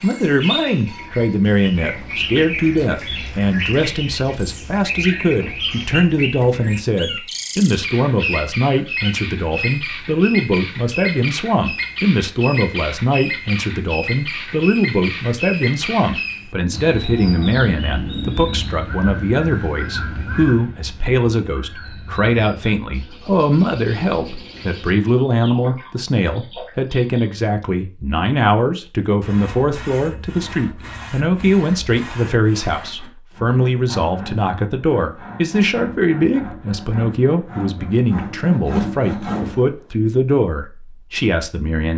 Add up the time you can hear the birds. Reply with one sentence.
You can hear the birds for 27 seconds altogether.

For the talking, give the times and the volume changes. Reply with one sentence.
The talking can be heard from 0.0 to 41.9 s, at a steady volume.